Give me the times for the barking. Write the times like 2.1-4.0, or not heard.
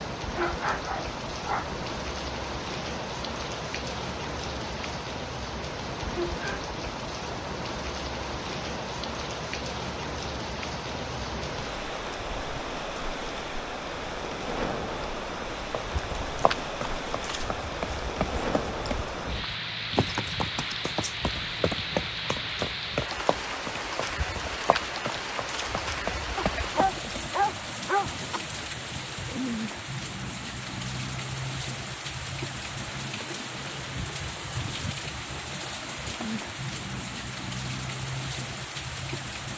0.3-1.8, 26.4-28.4.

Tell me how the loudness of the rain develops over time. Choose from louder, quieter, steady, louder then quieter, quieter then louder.
steady.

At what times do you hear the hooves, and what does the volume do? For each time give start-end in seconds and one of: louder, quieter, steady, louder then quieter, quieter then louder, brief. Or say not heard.
15.4-27.3 steady.